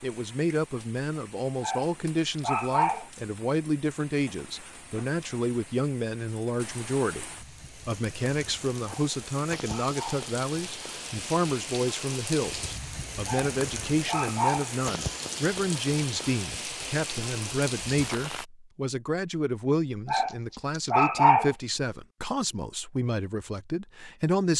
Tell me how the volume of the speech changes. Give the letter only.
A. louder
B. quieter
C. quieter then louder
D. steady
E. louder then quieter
D.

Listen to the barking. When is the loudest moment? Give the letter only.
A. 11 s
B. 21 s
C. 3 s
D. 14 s
B.